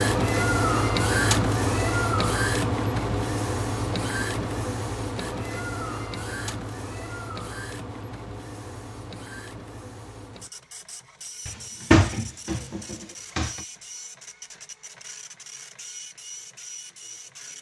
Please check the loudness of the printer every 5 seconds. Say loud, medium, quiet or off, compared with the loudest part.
loud, medium, quiet, quiet.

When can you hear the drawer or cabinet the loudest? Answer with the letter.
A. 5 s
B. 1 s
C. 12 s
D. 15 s
C.